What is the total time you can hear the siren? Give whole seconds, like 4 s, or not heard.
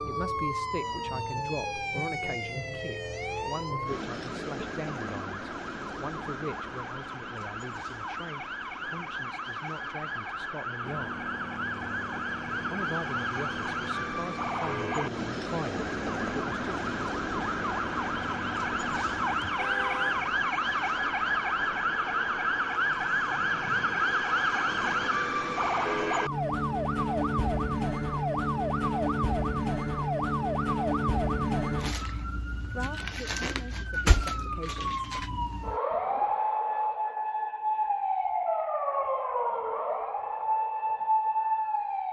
42 s.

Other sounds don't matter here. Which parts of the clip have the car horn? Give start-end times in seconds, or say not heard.
19.4-20.2.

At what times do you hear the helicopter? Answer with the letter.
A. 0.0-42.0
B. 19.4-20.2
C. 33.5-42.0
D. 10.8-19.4
D.